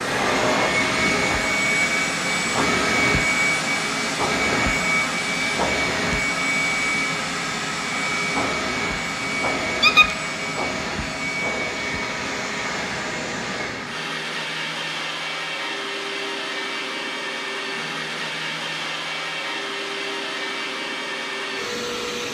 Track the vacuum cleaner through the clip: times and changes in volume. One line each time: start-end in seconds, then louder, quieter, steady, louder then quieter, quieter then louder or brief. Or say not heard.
0.0-22.3 quieter.